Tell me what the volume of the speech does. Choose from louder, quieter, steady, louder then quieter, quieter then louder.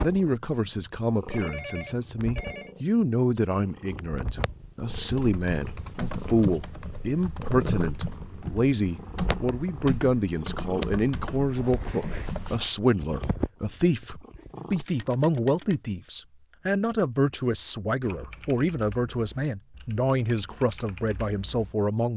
steady.